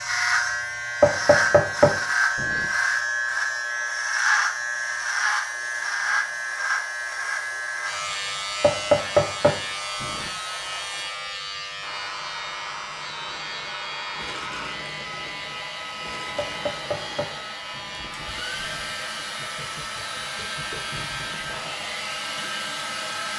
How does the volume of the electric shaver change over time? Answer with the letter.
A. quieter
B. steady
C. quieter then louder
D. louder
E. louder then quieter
A.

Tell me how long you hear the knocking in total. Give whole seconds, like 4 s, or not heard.
5 s.